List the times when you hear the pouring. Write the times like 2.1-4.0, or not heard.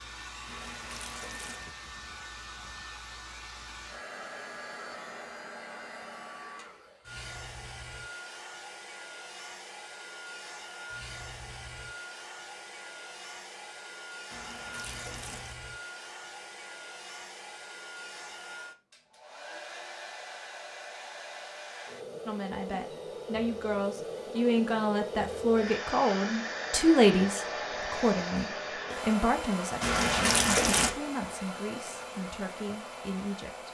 0.5-1.7, 14.3-15.6, 29.8-30.9.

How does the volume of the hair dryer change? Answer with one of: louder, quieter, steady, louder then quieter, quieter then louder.
louder.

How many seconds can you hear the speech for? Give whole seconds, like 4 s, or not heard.
11 s.